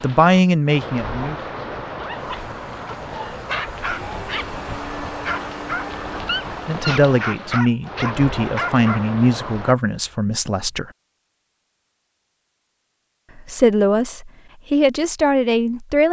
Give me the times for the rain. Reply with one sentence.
You can hear the rain from 0.0 to 9.8 s.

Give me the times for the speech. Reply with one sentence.
The speech can be heard from 0.0 to 1.5 s, from 6.7 to 10.9 s and from 13.3 to 16.0 s.